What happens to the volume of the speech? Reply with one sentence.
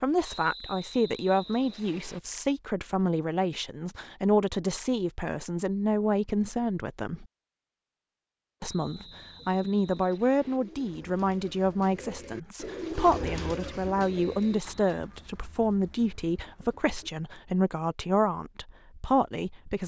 The volume of the speech stays about the same.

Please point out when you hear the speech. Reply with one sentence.
You can hear the speech from 0.0 to 7.2 s and from 8.6 to 19.8 s.